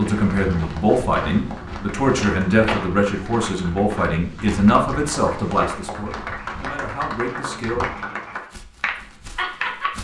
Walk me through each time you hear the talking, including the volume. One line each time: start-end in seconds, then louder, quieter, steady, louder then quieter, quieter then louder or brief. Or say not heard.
0.0-7.8 quieter.